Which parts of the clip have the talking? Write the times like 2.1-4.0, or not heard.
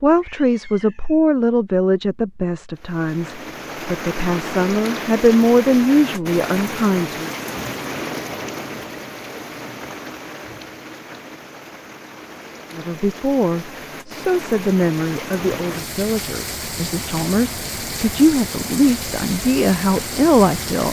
0.0-7.3, 12.7-20.8.